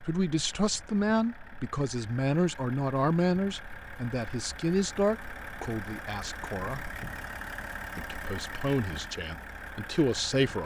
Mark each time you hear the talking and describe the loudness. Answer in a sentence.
The talking can be heard from 0.0 to 6.9 s, getting quieter; and briefly from 8.0 to 10.6 s.